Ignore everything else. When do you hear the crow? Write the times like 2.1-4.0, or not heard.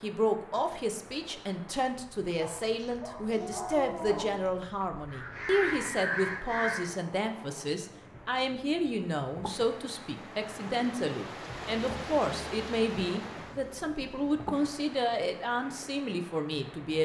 5.1-7.0.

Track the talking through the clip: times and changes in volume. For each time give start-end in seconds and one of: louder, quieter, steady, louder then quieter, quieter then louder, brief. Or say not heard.
0.0-17.0 steady.